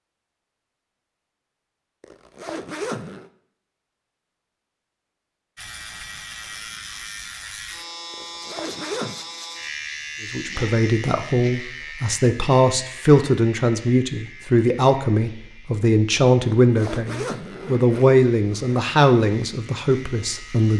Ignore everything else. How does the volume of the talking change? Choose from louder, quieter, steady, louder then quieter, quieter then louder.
steady.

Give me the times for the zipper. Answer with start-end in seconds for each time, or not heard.
2.0-3.3, 8.1-9.2, 16.6-18.8.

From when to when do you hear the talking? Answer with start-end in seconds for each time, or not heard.
10.3-20.7.